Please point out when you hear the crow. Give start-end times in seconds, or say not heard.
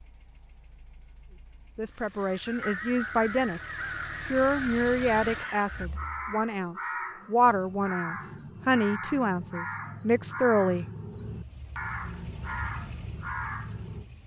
2.1-14.1.